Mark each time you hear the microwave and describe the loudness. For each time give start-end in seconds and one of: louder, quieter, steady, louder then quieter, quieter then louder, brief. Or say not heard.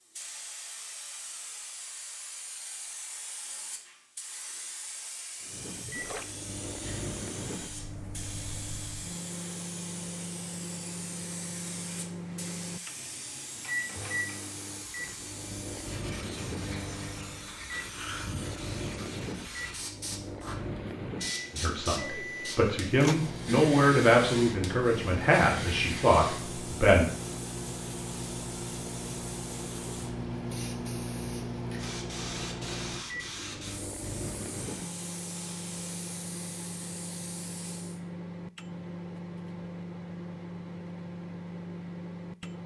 5.4-42.6 steady.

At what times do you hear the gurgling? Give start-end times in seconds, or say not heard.
5.8-6.3.